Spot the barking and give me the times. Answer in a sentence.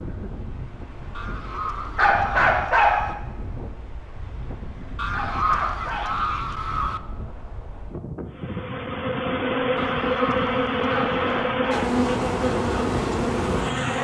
You can hear the barking from 1.9 to 3.0 s, from 5.1 to 6.2 s and from 10.8 to 11.9 s.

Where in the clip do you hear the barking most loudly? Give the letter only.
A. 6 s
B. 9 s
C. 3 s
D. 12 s
C.